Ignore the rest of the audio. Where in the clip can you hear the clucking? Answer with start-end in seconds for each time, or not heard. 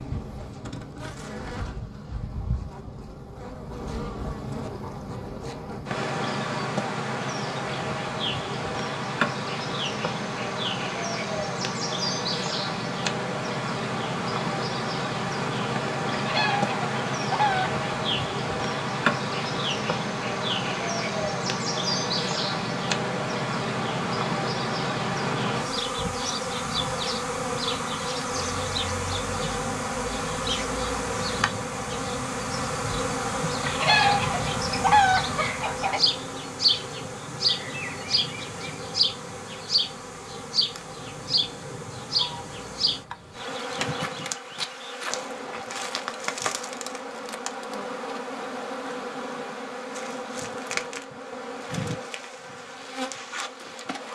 16.1-17.8, 33.6-36.0.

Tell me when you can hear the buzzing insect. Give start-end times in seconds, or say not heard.
0.0-54.1.